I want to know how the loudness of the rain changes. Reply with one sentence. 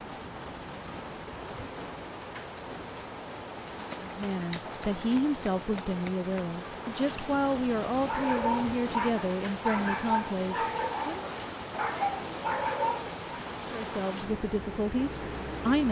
The volume of the rain stays about the same.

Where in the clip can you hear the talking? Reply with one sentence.
You can hear the talking from 4.0 to 11.2 s and from 13.7 to 15.8 s.